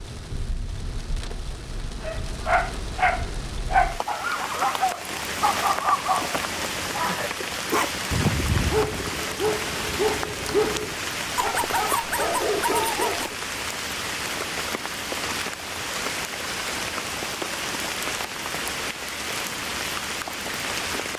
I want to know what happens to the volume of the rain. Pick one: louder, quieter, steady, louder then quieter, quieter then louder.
louder.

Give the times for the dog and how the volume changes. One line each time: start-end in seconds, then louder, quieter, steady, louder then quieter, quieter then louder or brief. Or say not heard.
2.0-13.3 steady.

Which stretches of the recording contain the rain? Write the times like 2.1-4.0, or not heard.
0.0-21.1.